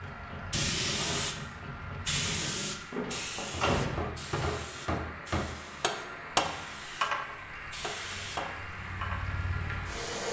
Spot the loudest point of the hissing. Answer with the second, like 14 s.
1 s.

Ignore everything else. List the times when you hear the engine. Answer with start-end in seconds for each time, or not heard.
0.0-10.2.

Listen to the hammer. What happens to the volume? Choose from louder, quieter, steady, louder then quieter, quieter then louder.
louder then quieter.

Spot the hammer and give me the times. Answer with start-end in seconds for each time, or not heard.
0.0-9.9.